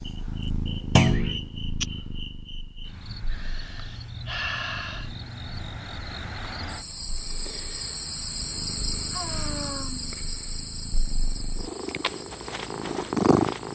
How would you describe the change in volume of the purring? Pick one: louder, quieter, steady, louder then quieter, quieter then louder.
quieter then louder.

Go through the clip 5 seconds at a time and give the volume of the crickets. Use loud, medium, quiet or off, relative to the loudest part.
medium, loud, medium.